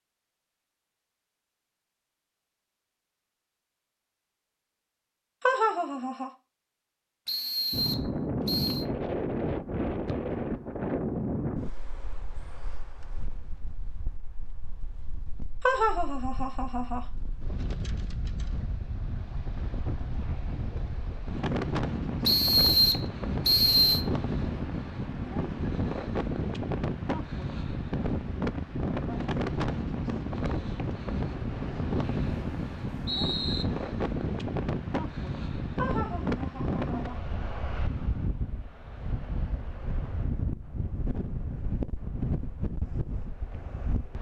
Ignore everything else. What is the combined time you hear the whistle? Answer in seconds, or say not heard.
5 s.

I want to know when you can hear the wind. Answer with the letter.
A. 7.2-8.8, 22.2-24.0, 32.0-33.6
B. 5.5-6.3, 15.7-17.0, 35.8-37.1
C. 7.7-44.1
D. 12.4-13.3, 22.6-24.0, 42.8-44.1
C.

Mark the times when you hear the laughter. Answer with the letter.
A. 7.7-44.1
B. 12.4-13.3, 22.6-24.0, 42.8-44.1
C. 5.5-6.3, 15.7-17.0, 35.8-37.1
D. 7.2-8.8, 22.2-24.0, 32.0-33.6
C.